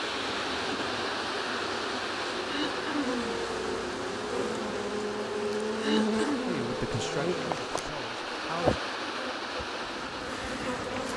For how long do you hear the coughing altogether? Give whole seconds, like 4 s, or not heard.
2 s.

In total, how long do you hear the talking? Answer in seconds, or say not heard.
2 s.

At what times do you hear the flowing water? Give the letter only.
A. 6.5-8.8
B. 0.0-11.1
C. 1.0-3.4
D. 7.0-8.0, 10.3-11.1
B.